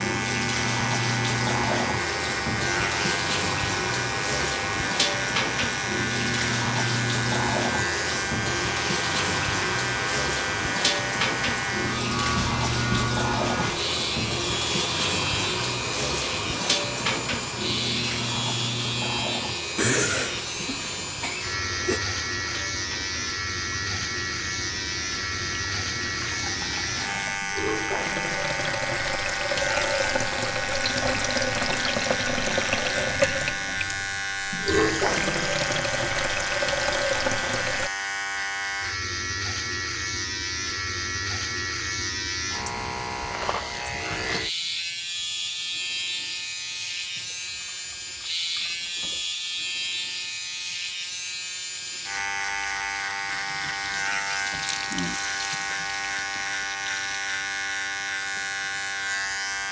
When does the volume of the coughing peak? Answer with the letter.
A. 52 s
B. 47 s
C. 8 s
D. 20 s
D.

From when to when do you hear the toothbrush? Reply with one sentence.
The toothbrush can't be heard in this clip.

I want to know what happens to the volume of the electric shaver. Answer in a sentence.
The loudness of the electric shaver stays about the same.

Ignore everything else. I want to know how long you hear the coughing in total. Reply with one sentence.
You can hear the coughing for 2 seconds altogether.